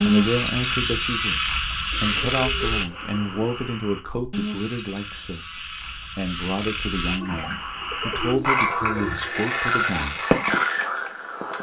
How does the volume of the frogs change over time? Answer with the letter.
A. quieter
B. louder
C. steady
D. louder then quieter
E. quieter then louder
E.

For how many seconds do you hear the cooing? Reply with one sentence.
The cooing can be heard for 4 seconds in total.